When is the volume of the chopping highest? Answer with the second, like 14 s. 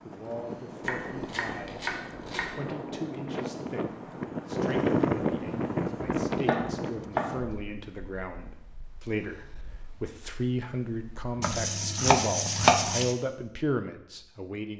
13 s.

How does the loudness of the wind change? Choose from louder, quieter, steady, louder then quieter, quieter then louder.
louder then quieter.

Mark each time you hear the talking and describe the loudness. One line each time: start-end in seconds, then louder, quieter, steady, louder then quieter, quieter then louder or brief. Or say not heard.
0.0-14.7 louder.